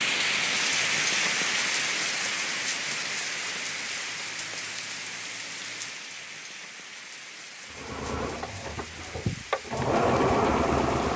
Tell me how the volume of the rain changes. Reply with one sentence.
The loudness of the rain goes down.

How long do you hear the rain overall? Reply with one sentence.
The rain can be heard for 11 seconds in total.